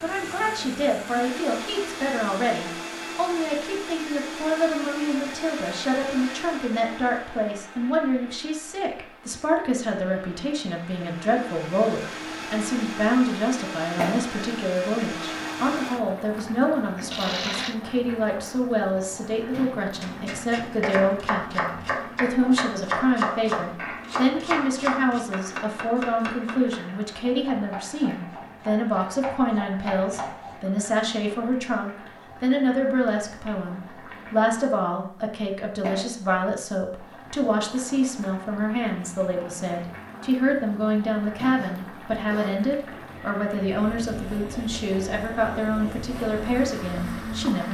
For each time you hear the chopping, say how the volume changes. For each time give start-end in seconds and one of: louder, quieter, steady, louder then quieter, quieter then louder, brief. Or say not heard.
20.0-30.6 quieter.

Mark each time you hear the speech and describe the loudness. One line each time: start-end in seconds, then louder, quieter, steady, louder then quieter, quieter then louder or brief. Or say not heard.
0.0-47.7 steady.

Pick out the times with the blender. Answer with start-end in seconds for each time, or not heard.
0.0-17.8, 41.5-47.7.